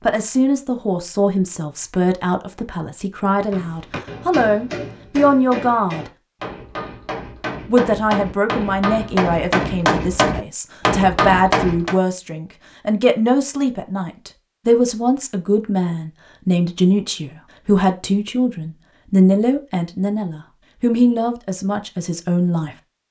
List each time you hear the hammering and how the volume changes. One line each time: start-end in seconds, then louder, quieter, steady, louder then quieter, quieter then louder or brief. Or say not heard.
3.5-11.9 louder.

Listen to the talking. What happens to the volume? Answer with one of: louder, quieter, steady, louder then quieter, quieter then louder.
steady.